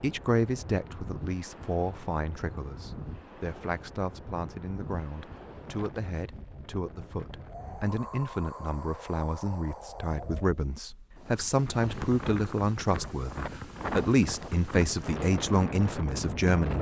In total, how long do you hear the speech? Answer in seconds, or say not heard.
17 s.